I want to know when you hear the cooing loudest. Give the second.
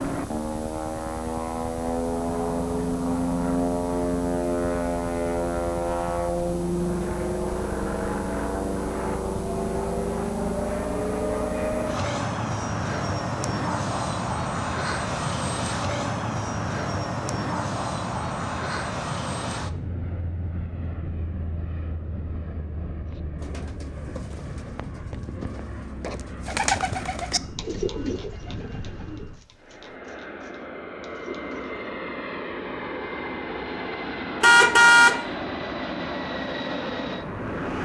27 s.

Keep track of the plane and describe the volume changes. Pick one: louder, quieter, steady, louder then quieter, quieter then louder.
quieter then louder.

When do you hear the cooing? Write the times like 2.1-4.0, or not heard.
23.1-31.9.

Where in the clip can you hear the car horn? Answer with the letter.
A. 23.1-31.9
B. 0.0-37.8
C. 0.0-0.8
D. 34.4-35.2
D.